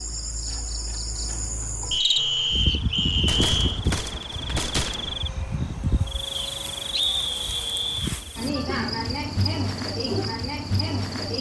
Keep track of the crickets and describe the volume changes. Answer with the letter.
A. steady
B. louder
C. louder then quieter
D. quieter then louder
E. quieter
A.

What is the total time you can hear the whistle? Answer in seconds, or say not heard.
4 s.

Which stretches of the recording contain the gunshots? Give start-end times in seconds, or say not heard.
3.2-5.2.